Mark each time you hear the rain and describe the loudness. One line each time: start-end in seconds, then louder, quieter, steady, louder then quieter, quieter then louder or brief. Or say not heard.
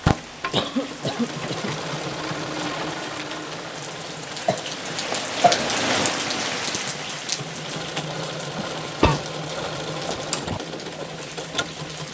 0.0-12.0 louder then quieter.